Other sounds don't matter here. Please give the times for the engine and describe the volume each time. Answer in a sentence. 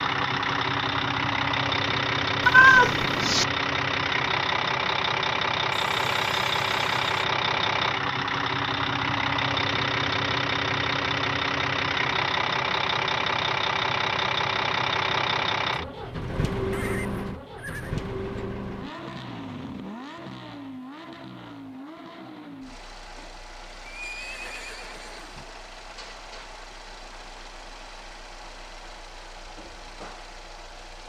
You can hear the engine from 0.0 to 31.0 s, getting quieter.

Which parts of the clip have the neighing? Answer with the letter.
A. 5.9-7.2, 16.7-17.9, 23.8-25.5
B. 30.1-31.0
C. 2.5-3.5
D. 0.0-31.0
A.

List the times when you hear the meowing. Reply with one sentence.
The meowing can be heard from 2.5 to 3.5 s.